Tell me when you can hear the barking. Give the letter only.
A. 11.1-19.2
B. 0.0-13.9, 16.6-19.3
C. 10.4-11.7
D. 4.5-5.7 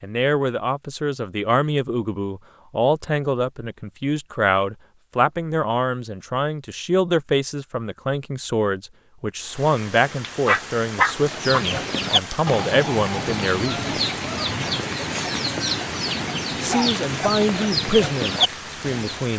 C.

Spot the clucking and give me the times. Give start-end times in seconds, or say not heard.
11.1-19.2.